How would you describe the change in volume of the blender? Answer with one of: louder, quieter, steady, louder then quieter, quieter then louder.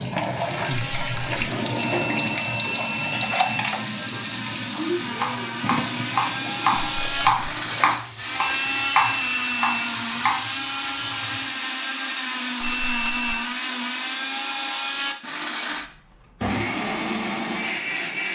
louder.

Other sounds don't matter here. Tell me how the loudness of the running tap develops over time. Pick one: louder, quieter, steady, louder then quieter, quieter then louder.
quieter.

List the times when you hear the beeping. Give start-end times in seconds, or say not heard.
2.0-3.6, 8.6-9.8, 12.6-13.4.